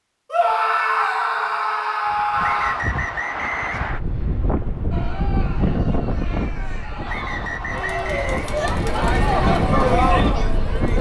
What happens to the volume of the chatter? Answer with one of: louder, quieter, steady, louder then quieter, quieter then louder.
louder.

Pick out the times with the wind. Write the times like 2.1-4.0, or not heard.
2.1-10.9.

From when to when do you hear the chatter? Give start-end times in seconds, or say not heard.
4.9-10.9.